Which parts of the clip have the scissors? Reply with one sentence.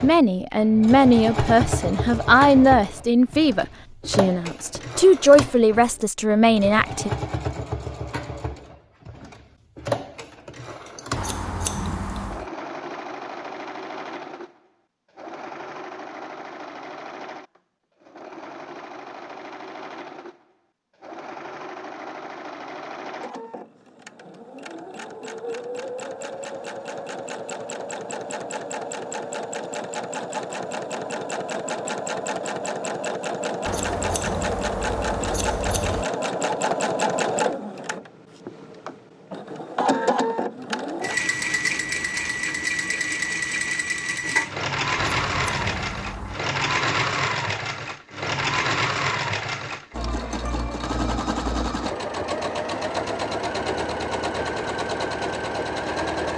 The scissors can be heard from 11.2 to 12.4 s, from 33.6 to 36.0 s and from 45.2 to 46.5 s.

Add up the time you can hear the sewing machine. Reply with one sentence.
You can hear the sewing machine for 56 seconds altogether.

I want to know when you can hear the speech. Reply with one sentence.
The speech can be heard from 0.0 to 7.1 s.